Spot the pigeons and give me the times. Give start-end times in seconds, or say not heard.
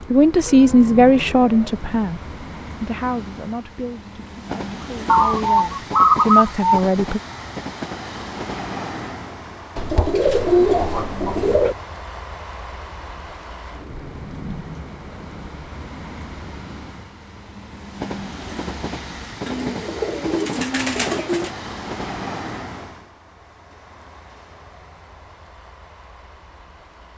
5.0-6.8, 9.8-11.8, 19.4-21.5.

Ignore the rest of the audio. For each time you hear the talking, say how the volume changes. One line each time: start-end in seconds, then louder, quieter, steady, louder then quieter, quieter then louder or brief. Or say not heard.
0.1-7.2 quieter then louder.